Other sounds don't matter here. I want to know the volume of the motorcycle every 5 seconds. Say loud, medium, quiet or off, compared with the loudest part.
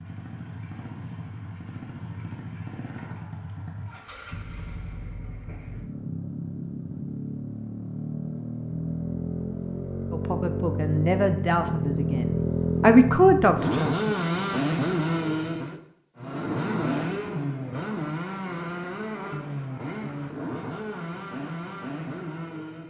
quiet, medium, loud, loud, medium.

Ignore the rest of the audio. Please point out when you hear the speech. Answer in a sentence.
The speech can be heard from 10.1 to 14.2 s.